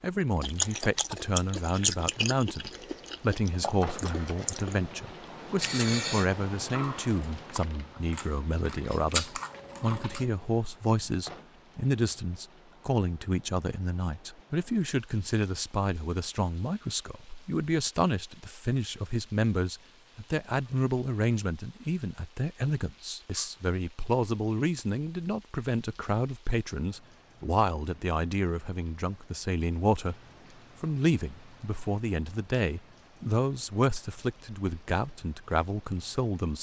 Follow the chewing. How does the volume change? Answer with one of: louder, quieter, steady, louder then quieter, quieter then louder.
quieter then louder.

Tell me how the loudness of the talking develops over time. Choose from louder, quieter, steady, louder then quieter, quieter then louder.
steady.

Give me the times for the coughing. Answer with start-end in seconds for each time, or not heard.
5.6-6.3.